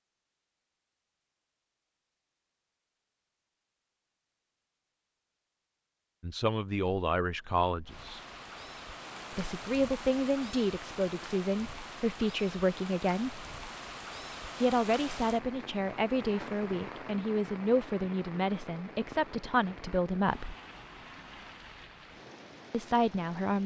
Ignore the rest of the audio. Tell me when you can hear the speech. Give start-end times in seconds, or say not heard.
6.2-8.2, 9.3-13.4, 14.6-20.6, 22.7-23.6.